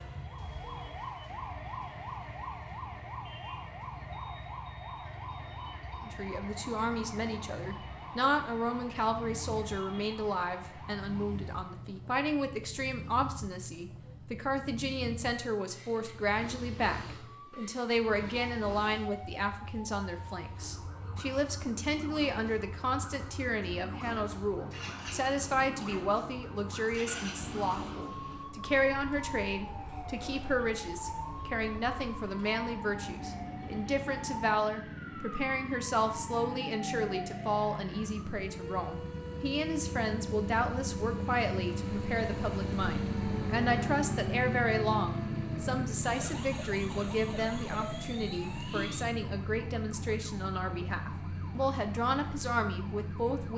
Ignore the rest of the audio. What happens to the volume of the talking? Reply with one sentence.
The loudness of the talking stays about the same.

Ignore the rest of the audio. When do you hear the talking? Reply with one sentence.
You can hear the talking from 6.0 to 53.5 s.